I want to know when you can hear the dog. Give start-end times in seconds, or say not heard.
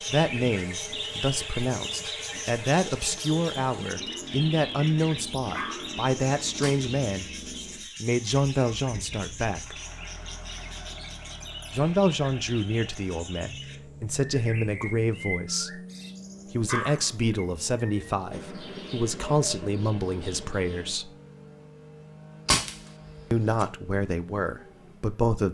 5.5-6.0, 16.6-17.1.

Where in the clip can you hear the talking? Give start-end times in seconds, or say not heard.
0.1-9.8, 11.7-15.8, 16.5-21.1, 23.3-25.4.